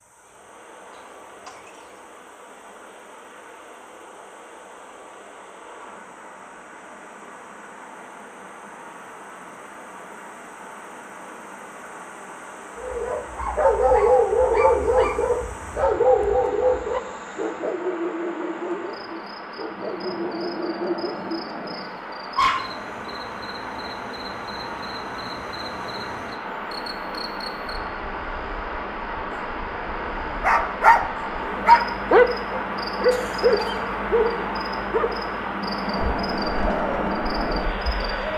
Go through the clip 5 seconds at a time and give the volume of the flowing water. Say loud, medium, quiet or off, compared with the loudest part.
quiet, quiet, quiet, medium, medium, medium, loud, loud.